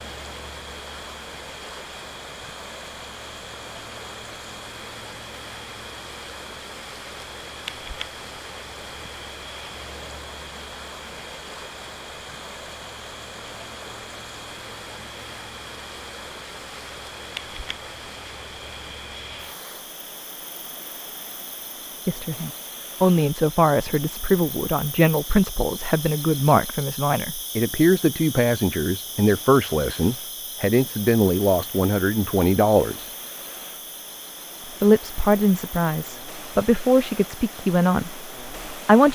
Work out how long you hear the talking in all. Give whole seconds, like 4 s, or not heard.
15 s.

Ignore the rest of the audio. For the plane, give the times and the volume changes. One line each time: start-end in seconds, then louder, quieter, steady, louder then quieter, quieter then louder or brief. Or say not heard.
not heard.